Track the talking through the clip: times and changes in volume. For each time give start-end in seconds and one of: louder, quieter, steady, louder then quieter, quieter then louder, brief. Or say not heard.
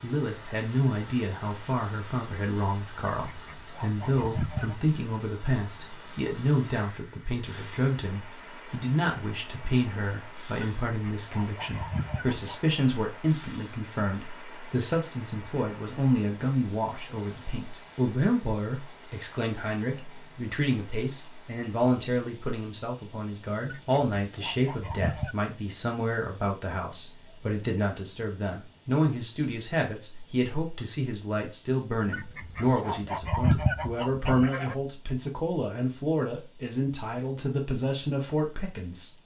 0.0-39.1 steady.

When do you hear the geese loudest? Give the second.
34 s.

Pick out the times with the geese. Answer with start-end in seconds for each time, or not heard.
3.2-4.8, 10.6-12.6, 23.6-25.4, 32.1-34.8.